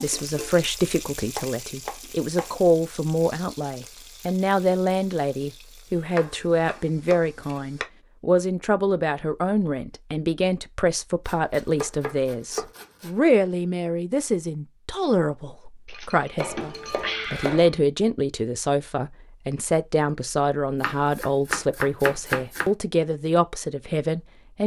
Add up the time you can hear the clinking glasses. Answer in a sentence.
The clinking glasses can be heard for 2 seconds in total.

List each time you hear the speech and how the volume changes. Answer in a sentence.
You can hear the speech from 0.0 to 24.6 s, at a steady volume.